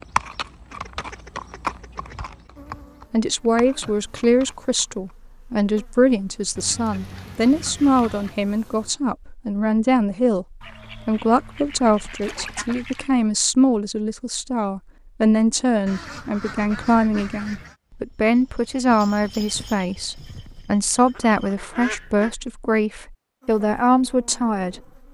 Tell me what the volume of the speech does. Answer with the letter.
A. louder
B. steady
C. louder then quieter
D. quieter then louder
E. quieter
B.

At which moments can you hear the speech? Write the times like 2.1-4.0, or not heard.
3.1-24.8.